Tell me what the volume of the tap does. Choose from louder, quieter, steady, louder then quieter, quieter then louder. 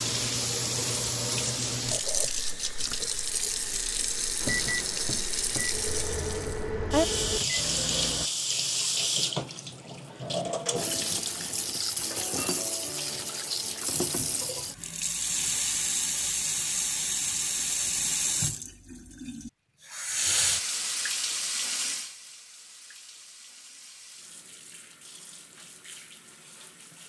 quieter.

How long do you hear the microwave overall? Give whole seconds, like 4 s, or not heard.
4 s.